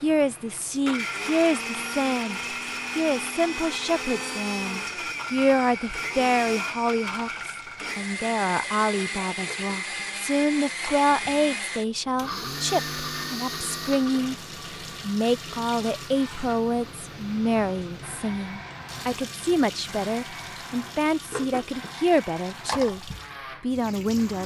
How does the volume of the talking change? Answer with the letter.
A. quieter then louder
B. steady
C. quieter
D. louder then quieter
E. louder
B.